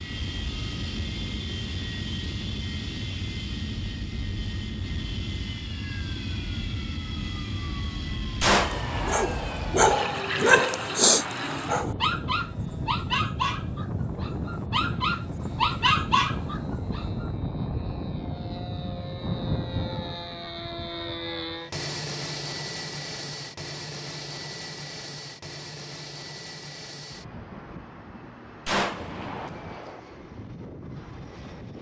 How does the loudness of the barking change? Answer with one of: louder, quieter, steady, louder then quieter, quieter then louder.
quieter then louder.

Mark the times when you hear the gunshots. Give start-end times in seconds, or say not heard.
8.4-9.8, 28.6-30.0.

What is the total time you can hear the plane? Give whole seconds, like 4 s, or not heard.
32 s.